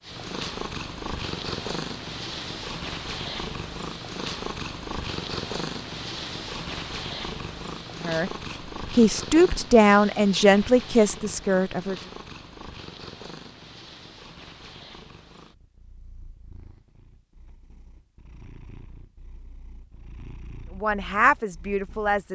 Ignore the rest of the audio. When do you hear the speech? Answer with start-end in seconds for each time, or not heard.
7.9-12.1, 20.7-22.3.